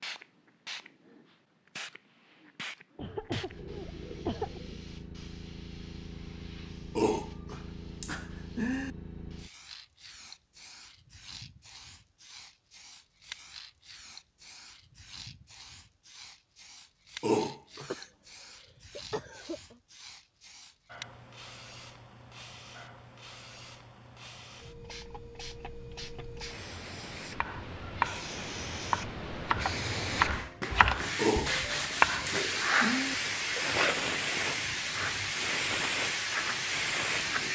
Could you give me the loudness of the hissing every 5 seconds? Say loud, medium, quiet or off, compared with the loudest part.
quiet, quiet, quiet, quiet, quiet, medium, loud, loud.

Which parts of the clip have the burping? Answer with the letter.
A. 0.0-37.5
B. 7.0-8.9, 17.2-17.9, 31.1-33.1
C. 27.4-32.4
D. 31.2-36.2
B.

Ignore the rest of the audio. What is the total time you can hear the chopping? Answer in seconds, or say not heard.
5 s.